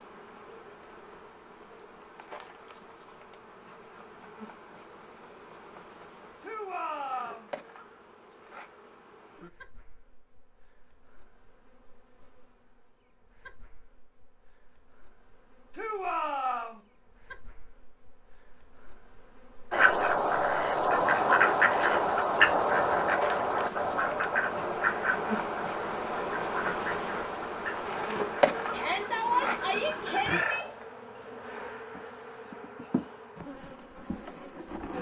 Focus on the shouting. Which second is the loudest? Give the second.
29 s.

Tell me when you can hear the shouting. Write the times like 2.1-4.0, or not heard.
6.4-7.5, 15.8-16.8, 28.7-30.6.